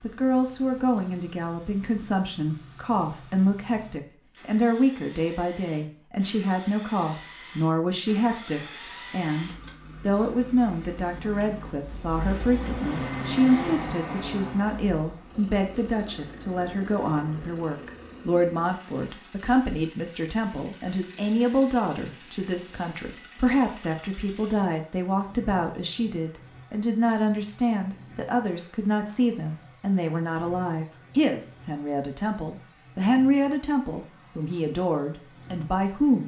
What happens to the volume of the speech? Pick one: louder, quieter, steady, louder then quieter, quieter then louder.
steady.